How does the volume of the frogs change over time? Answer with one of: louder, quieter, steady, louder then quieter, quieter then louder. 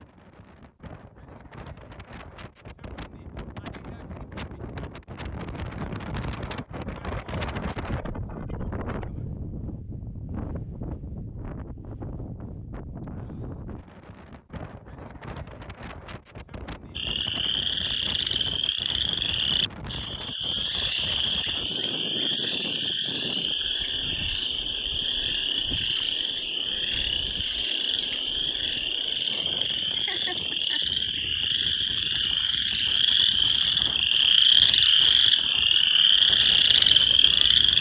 louder.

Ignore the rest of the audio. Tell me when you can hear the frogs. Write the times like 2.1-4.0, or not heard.
16.9-37.7.